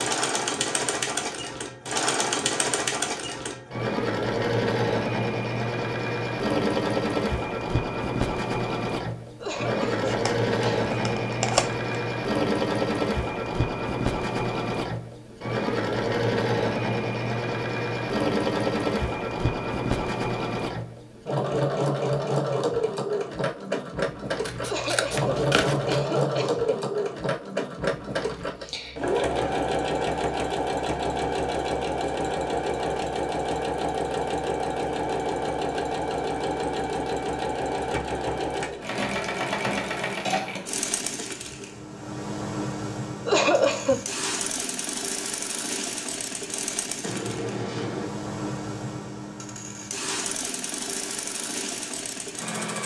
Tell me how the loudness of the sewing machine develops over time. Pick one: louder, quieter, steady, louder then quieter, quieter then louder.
quieter.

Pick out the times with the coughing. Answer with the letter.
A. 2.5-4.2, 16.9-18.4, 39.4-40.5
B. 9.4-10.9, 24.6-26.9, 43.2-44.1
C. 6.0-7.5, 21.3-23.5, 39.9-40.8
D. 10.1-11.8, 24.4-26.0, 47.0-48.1
B.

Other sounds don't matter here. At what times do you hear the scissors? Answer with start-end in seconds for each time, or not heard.
10.1-11.8, 24.4-26.0, 47.0-48.1.